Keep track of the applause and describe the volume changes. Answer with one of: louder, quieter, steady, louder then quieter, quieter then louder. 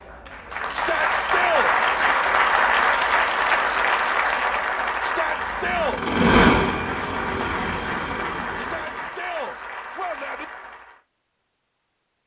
quieter.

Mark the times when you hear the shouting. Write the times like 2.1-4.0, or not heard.
0.7-1.8, 5.0-6.0, 8.6-10.4.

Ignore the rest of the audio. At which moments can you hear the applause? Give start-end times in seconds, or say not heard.
0.0-11.0.